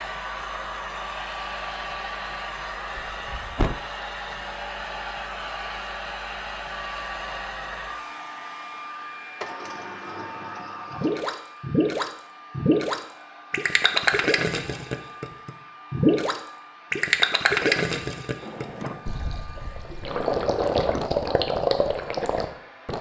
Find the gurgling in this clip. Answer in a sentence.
The gurgling can be heard from 10.9 to 22.9 s.